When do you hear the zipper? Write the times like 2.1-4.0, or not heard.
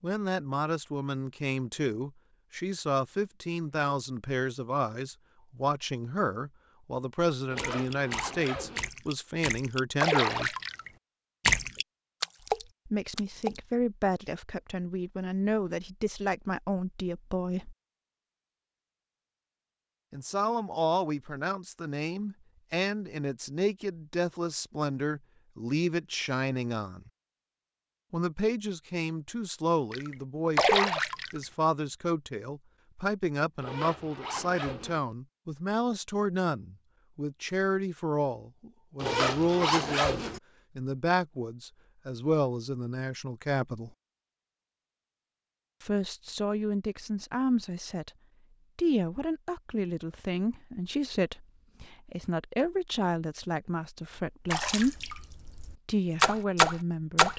7.5-8.9, 33.6-35.0, 39.0-40.4.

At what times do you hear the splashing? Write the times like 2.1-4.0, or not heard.
7.5-13.7, 29.9-31.4, 54.5-57.3.